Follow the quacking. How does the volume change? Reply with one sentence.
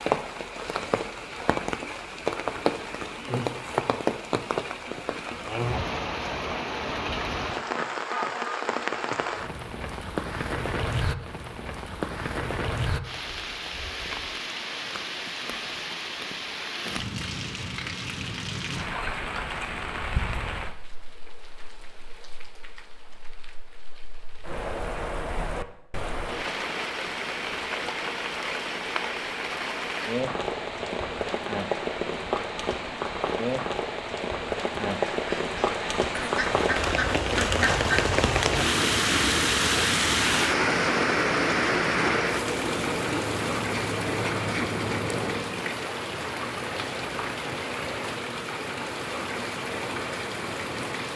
The loudness of the quacking stays about the same.